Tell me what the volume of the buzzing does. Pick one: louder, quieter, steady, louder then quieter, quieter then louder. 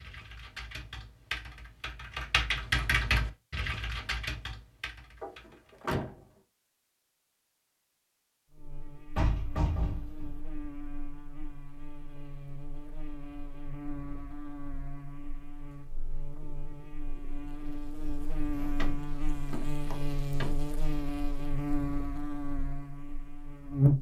louder.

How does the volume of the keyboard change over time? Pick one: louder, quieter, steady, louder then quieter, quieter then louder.
louder then quieter.